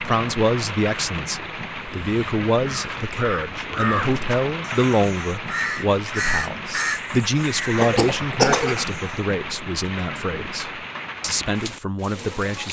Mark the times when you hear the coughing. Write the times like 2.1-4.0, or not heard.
7.1-8.8.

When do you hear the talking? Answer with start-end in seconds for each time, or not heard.
0.0-12.6.